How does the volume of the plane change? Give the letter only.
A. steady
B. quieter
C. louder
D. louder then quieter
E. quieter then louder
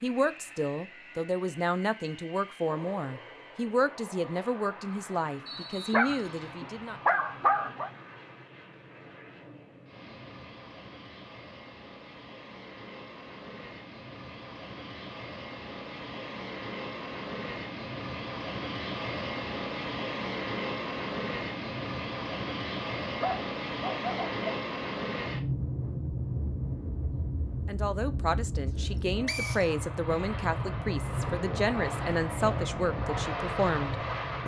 C.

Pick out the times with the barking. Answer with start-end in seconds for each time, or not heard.
5.9-7.9, 23.2-24.4.